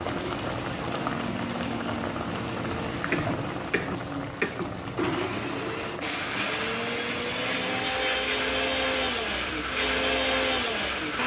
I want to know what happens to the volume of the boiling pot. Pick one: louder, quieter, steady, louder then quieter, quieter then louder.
quieter.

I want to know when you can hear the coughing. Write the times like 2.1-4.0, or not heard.
3.1-4.8.